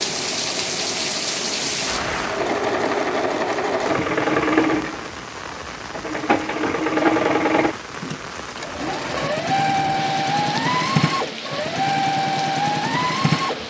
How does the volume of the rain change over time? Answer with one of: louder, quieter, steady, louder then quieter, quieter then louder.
quieter.